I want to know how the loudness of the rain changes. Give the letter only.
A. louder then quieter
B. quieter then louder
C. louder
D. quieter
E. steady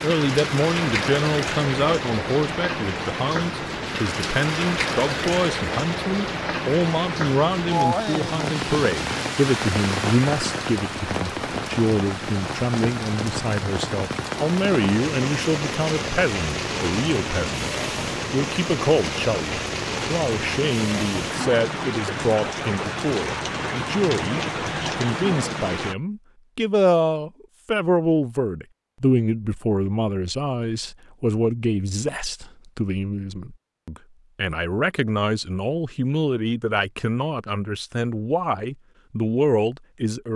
E.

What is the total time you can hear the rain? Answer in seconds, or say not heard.
26 s.